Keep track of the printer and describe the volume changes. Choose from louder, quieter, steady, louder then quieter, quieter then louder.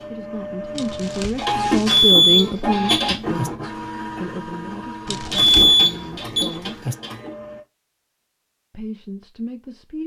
quieter.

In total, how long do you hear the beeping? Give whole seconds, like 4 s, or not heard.
3 s.